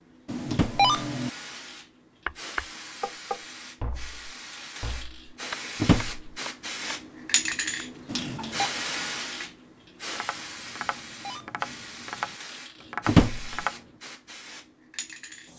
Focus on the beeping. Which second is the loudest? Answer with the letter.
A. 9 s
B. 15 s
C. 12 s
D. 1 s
D.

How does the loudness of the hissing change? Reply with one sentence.
The loudness of the hissing goes up, then down.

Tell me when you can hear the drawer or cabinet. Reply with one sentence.
You can hear the drawer or cabinet from 0.5 to 0.9 s, from 5.8 to 6.3 s and from 13.1 to 13.6 s.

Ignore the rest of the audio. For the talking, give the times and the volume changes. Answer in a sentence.
The talking can't be heard in this clip.